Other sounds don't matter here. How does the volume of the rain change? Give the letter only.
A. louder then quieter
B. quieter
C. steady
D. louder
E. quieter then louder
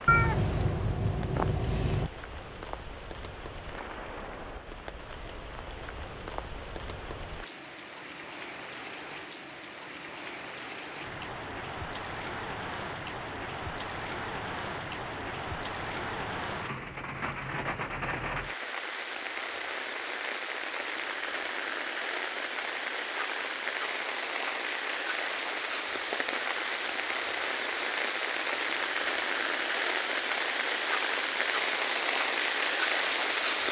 D.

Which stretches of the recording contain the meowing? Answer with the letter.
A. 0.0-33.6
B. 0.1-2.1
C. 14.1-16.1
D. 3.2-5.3
B.